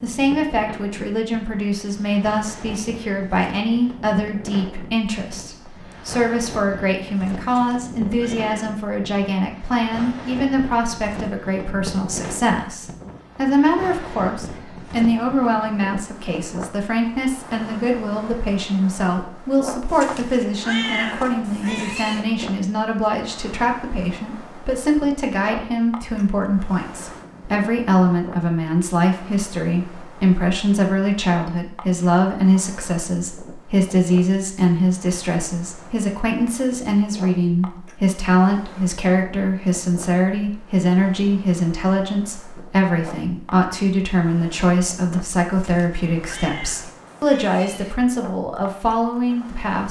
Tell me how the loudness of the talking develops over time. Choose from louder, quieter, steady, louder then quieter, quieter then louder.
steady.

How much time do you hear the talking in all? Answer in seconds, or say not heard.
50 s.